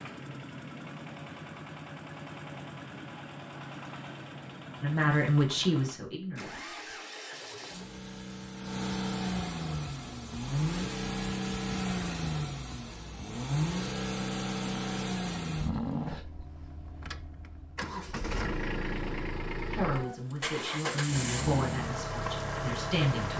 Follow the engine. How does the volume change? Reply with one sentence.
The loudness of the engine goes up.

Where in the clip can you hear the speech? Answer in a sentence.
You can hear the speech from 4.8 to 6.6 s and from 19.7 to 23.3 s.